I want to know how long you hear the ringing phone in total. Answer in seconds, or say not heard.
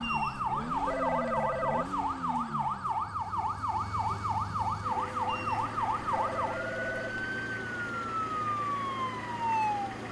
4 s.